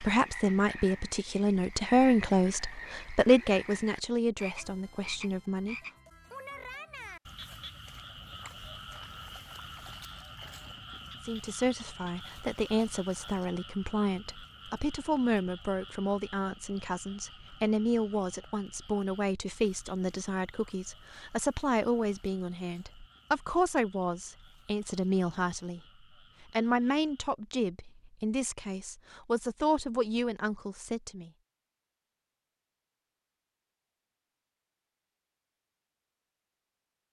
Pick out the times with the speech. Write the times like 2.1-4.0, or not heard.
0.0-5.8, 11.2-25.8, 26.5-31.3.